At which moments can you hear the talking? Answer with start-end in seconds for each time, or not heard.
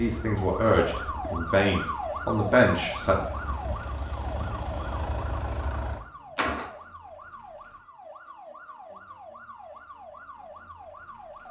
0.0-3.1.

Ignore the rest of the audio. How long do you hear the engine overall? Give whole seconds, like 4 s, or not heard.
7 s.